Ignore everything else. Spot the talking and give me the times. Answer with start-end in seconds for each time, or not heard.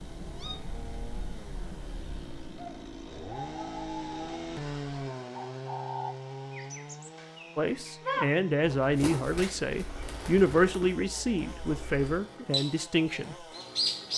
7.5-13.4.